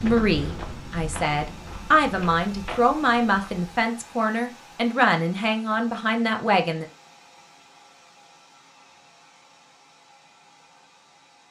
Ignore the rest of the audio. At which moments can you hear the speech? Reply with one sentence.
You can hear the speech from 0.0 to 6.8 s.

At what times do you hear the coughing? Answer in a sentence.
The coughing can't be heard in this clip.